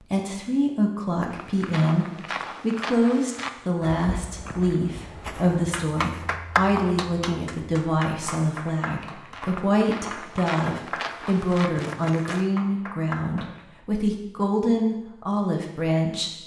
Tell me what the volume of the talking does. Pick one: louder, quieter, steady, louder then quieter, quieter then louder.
steady.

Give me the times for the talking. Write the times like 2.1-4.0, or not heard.
0.0-16.4.